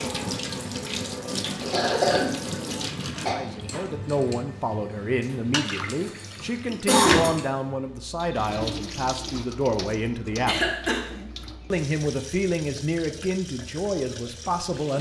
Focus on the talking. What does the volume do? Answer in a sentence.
The loudness of the talking stays about the same.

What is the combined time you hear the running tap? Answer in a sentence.
The running tap can be heard for 15 seconds in total.